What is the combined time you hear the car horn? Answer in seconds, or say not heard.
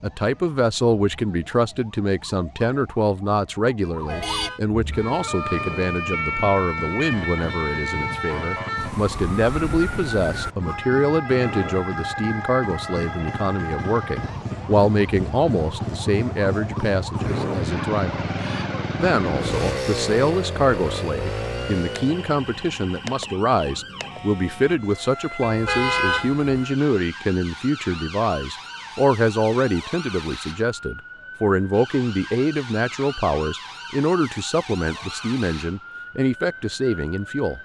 2 s.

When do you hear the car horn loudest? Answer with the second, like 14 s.
26 s.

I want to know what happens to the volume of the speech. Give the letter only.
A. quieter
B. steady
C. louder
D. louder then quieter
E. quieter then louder
B.